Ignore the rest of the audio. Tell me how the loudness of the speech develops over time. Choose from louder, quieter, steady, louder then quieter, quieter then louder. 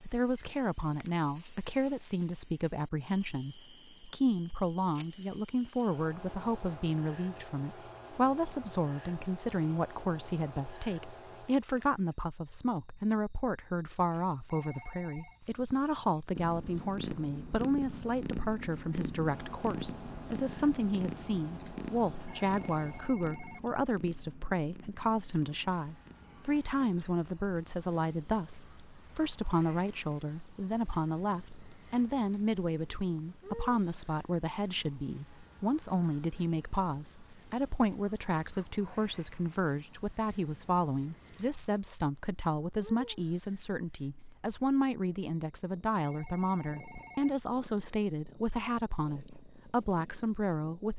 steady.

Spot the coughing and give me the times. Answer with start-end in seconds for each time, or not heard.
not heard.